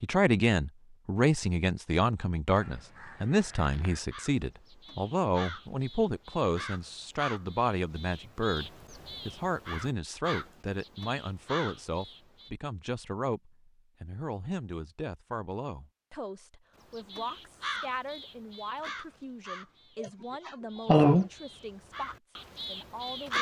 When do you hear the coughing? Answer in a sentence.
The coughing can be heard from 20.0 to 21.3 s.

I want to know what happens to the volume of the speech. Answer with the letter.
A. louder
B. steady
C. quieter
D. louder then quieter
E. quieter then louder
C.